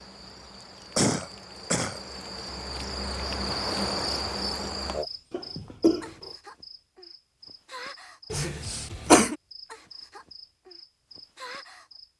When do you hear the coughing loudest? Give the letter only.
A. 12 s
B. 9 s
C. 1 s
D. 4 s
B.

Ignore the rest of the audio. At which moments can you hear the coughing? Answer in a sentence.
You can hear the coughing from 0.9 to 2.0 s, from 5.3 to 6.3 s and from 8.3 to 9.3 s.